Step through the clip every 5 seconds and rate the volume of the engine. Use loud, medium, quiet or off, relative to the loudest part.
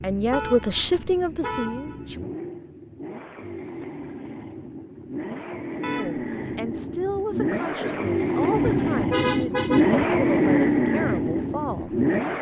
quiet, loud, loud.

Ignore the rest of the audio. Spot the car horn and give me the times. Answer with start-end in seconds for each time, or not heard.
0.3-2.0, 5.8-6.3, 8.5-10.1.